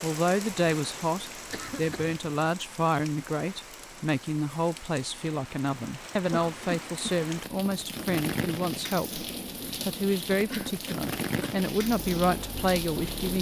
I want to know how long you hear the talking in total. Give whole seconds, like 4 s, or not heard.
13 s.